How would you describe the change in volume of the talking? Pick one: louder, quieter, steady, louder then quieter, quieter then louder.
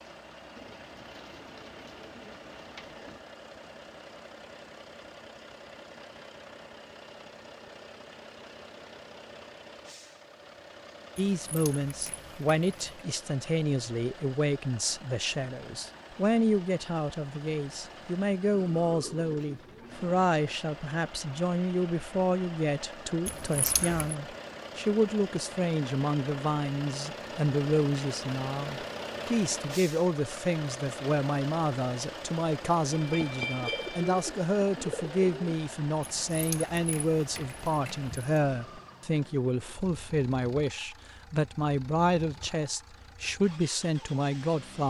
steady.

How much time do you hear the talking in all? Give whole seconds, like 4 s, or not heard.
34 s.